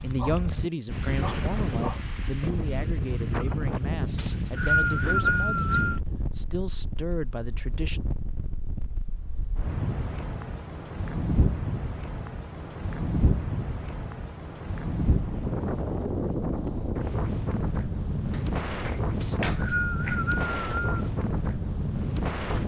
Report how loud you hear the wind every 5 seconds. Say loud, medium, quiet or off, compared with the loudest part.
loud, medium, loud, loud, loud.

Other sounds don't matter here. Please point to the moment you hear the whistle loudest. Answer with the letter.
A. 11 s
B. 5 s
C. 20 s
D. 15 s
B.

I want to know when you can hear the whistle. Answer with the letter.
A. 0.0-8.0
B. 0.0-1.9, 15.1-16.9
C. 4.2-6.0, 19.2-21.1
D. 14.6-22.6
C.